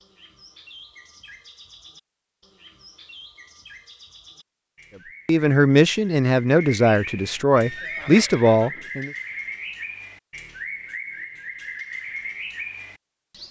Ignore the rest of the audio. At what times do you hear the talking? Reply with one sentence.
The talking can be heard from 5.2 to 9.1 s.